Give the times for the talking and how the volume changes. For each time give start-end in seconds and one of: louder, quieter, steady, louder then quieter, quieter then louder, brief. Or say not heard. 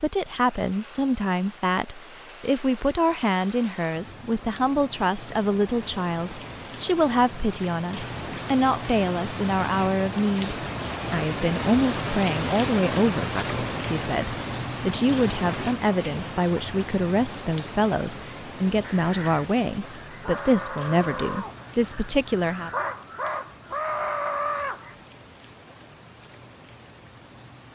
0.0-22.7 steady.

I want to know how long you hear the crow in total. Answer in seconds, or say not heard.
6 s.